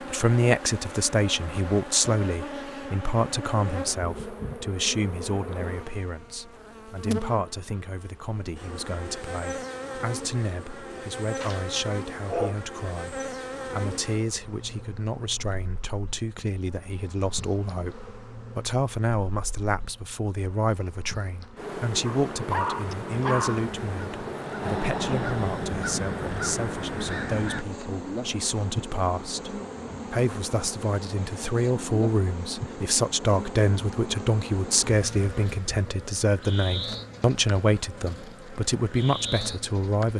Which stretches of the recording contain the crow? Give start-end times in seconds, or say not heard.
22.9-27.6.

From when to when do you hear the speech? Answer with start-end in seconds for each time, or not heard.
0.1-40.1.